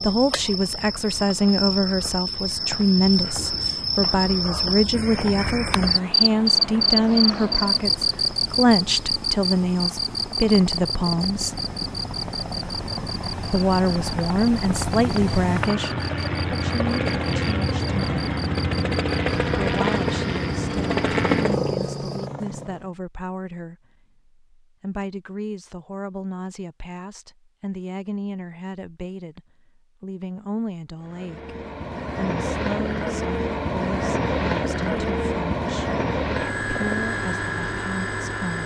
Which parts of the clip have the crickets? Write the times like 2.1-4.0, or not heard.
0.0-22.3.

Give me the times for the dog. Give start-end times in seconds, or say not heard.
not heard.